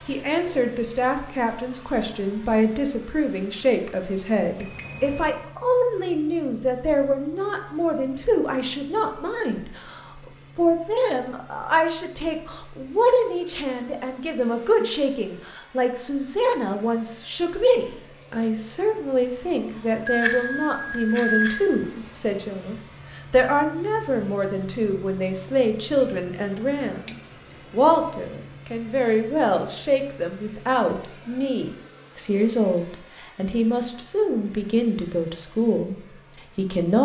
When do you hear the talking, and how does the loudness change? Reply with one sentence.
You can hear the talking from 0.1 to 37.0 s, at a steady volume.